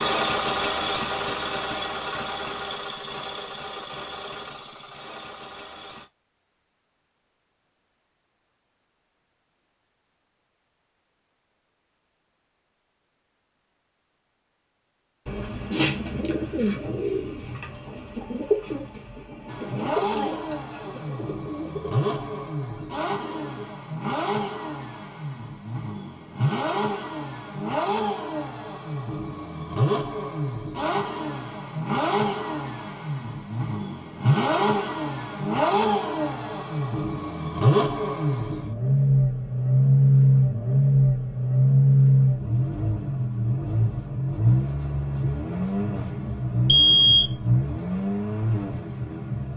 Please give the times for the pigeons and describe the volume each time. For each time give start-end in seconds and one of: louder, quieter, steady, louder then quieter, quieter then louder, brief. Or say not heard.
15.2-23.8 quieter.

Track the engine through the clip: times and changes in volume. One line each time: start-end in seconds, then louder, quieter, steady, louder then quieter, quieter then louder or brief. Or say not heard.
0.0-6.0 quieter
19.4-49.5 louder then quieter.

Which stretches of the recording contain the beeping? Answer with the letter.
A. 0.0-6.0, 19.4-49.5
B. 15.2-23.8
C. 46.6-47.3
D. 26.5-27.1
C.